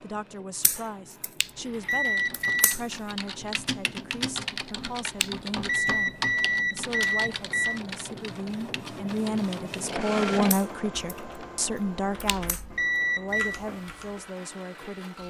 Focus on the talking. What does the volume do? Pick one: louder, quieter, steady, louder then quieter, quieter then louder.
louder then quieter.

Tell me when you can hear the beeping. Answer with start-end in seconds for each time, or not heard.
1.4-2.8, 5.2-7.8, 12.2-13.6.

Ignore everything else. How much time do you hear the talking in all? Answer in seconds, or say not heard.
15 s.